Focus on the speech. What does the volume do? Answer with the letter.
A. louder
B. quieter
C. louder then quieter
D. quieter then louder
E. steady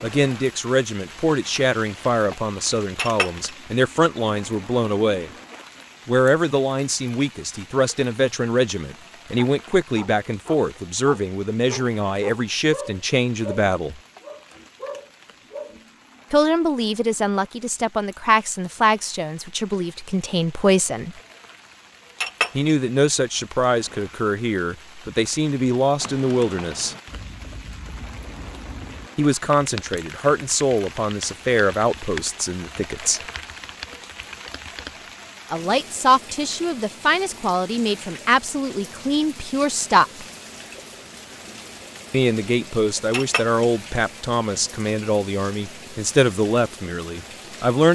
E.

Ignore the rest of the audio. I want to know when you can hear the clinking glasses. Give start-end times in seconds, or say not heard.
3.0-3.5, 22.2-22.7, 43.1-43.6.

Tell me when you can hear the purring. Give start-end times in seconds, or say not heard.
not heard.